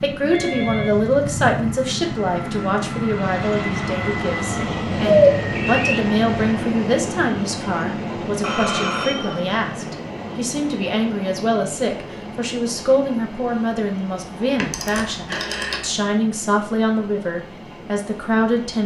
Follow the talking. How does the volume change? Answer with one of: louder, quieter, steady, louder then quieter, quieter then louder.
steady.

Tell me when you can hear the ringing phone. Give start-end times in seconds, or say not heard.
0.3-1.8, 8.4-9.6, 14.6-15.8.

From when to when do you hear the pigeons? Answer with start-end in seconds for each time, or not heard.
5.2-6.5.